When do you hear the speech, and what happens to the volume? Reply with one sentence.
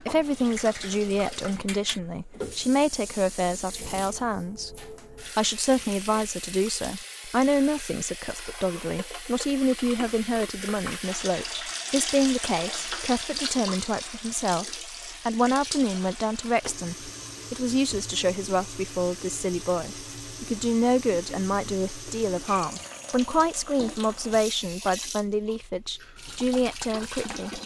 The speech can be heard from 0.1 to 27.6 s, at a steady volume.